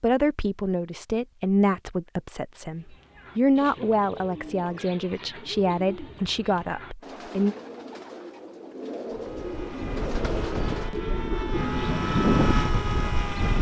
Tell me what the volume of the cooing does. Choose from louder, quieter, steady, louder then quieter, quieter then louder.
louder.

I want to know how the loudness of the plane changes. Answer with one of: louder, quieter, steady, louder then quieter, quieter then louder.
louder.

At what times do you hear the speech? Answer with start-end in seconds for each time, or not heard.
0.0-7.5.